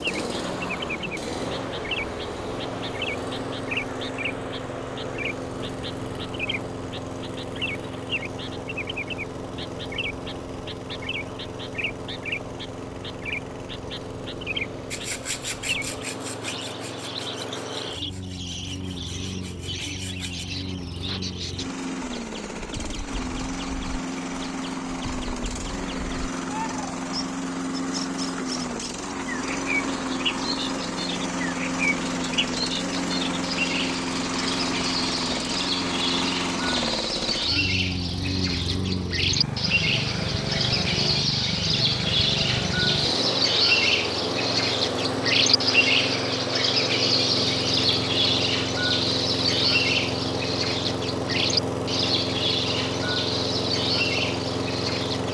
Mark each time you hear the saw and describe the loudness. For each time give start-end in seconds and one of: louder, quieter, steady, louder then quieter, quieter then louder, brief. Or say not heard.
14.9-20.4 quieter then louder.